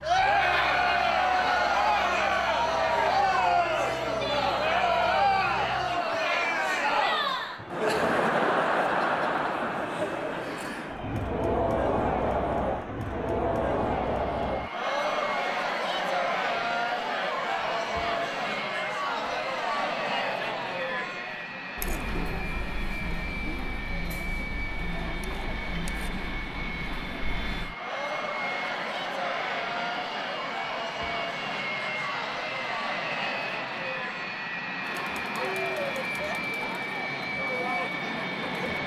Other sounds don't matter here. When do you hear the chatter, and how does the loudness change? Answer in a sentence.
You can hear the chatter from 0.0 to 38.8 s, getting quieter.